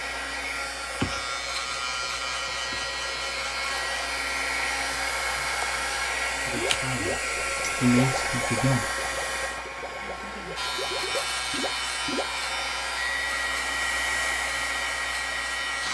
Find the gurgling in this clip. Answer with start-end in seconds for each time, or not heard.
6.5-12.4.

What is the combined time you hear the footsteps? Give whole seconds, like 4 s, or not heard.
not heard.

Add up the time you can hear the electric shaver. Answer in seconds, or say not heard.
11 s.